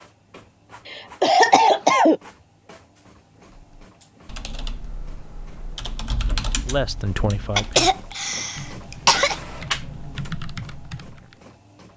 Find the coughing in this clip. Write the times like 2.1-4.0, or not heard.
0.8-2.2, 7.5-9.3.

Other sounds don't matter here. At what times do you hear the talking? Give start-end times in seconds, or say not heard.
6.2-8.0.